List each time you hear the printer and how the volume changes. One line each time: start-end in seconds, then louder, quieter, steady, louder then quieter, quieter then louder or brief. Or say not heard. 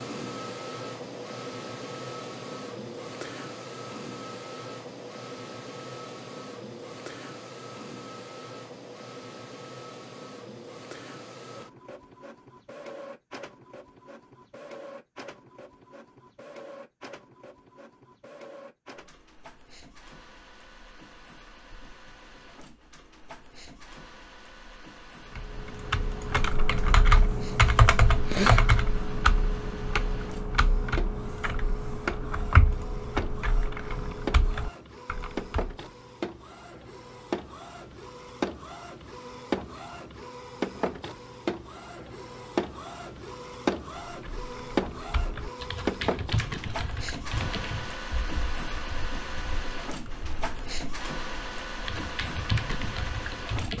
0.0-53.7 quieter then louder.